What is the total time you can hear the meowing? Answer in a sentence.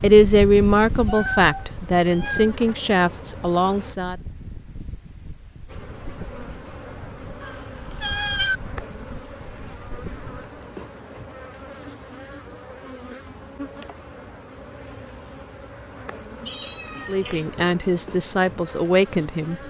The meowing can be heard for 4 seconds in total.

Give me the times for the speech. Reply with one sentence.
The speech can be heard from 0.0 to 4.2 s and from 17.0 to 19.6 s.